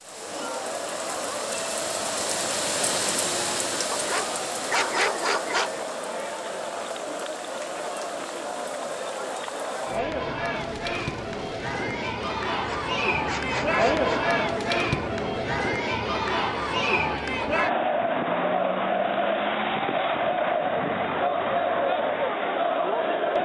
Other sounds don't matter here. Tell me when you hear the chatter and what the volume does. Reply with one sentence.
You can hear the chatter from 0.0 to 23.4 s, getting louder.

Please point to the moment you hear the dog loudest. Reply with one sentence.
The volume of the dog peaks at 5 seconds.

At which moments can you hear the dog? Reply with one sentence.
The dog can be heard from 3.9 to 5.8 s and from 12.5 to 14.2 s.